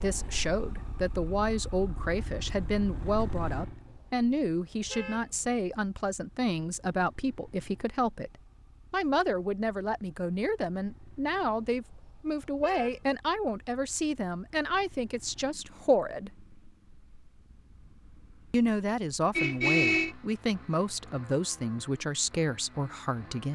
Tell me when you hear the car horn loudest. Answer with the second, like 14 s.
20 s.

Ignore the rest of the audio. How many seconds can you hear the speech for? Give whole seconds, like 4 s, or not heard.
21 s.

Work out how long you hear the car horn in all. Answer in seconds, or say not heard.
4 s.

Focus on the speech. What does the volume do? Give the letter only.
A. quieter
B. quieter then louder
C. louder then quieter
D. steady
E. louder
D.